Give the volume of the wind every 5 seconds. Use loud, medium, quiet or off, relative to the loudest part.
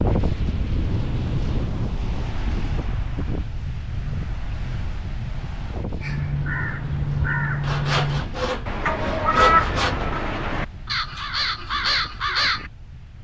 loud, medium, quiet.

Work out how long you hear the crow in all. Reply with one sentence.
You can hear the crow for 7 seconds altogether.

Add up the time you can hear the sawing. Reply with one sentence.
The sawing can be heard for 2 seconds in total.